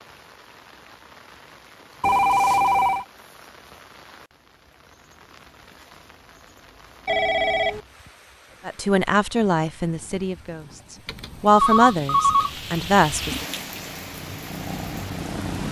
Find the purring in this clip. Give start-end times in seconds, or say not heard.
13.4-15.6.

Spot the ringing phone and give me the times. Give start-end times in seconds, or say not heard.
2.0-3.0, 7.0-7.8, 11.1-12.6.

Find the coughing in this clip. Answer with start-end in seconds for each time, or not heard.
not heard.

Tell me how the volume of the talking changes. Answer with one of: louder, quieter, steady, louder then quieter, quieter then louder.
quieter then louder.